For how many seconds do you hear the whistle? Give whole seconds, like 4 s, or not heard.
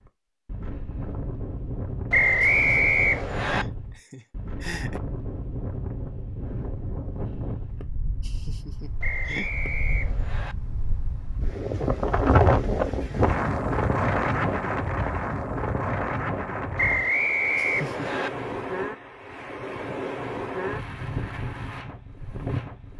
5 s.